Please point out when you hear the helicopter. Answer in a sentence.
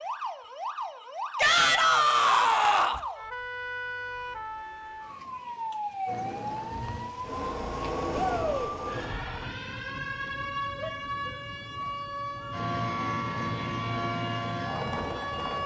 The helicopter can be heard from 6.0 to 9.5 s and from 12.5 to 15.6 s.